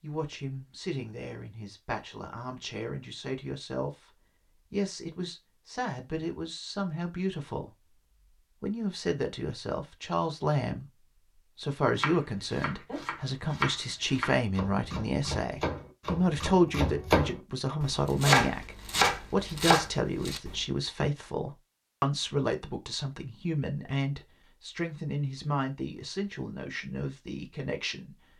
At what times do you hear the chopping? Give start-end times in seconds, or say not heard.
11.9-20.6.